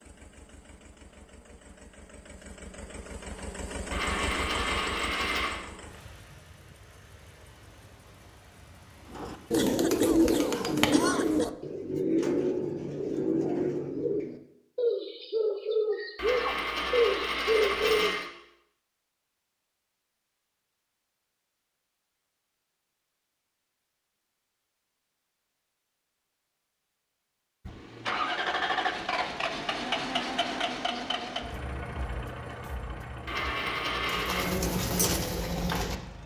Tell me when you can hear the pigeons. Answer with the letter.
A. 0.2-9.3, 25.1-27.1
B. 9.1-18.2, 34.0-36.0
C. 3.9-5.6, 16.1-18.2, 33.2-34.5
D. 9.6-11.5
B.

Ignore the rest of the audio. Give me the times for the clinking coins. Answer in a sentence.
The clinking coins can be heard from 3.9 to 5.6 s, from 16.1 to 18.2 s and from 33.2 to 34.5 s.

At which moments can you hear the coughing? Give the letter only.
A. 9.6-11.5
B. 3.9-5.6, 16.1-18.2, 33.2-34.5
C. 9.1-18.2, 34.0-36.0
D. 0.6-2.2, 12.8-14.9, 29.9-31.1
A.